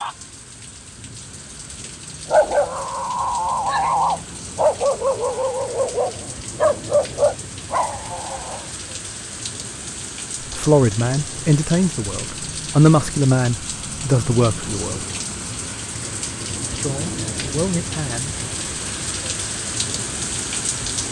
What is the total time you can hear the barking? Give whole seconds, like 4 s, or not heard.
6 s.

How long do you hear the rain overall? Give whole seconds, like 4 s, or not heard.
21 s.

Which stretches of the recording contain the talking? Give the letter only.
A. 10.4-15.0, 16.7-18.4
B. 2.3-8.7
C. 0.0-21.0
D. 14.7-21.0
A.